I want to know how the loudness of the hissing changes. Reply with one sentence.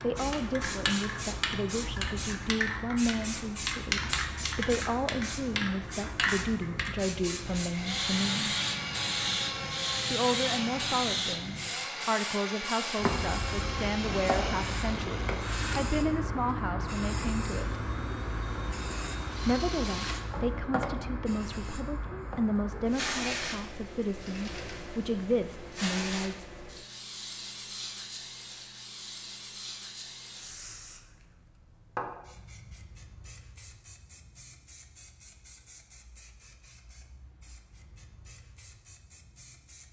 The loudness of the hissing goes down.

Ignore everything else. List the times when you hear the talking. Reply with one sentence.
The talking can be heard from 0.0 to 8.6 s, from 10.1 to 17.8 s and from 19.4 to 26.4 s.